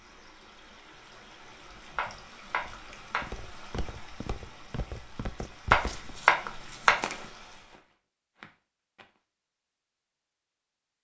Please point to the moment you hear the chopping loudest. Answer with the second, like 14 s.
6 s.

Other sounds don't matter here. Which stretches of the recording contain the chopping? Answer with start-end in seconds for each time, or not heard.
1.9-3.3, 5.7-7.0.